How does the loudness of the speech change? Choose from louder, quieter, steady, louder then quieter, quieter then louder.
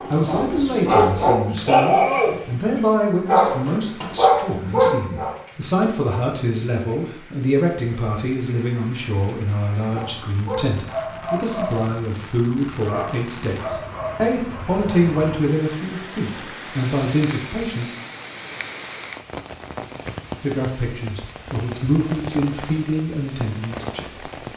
steady.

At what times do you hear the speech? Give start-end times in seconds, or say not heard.
0.1-17.9, 20.4-24.2.